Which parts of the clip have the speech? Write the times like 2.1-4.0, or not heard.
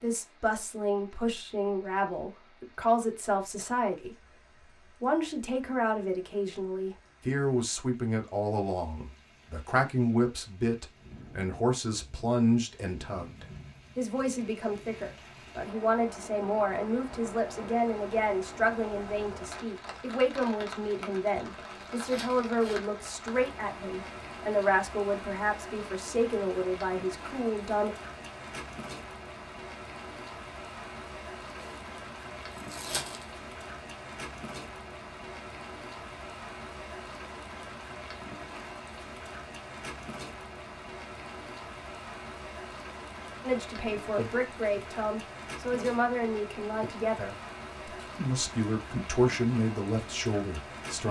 0.0-4.2, 5.0-27.9, 43.4-51.0.